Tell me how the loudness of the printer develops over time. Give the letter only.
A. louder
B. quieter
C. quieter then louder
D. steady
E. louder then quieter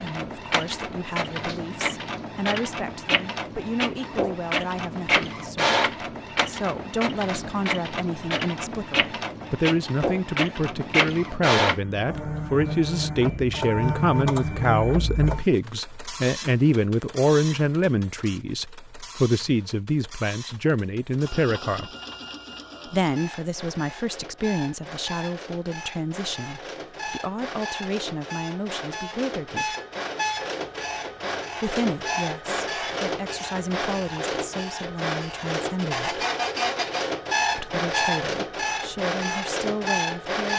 C.